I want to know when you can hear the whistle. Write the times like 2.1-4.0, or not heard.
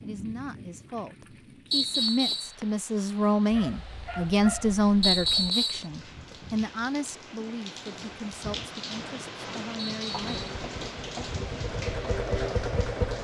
1.7-2.5, 5.0-5.8, 9.8-10.3.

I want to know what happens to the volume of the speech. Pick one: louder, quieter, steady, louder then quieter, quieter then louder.
louder then quieter.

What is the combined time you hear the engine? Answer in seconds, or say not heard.
3 s.